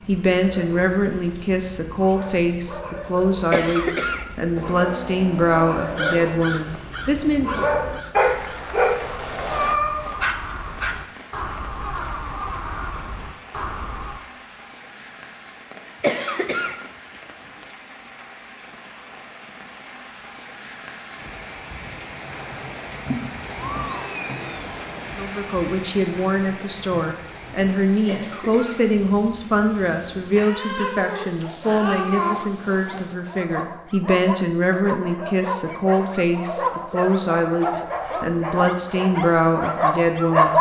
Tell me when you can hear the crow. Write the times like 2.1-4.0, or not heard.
3.9-14.2.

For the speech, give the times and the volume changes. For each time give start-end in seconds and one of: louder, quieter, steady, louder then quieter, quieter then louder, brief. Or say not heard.
0.1-7.7 steady
25.1-40.5 steady.